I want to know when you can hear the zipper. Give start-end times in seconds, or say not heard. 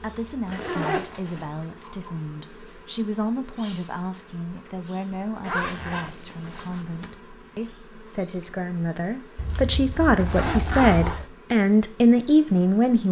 0.5-1.4, 5.4-7.2, 9.3-11.3.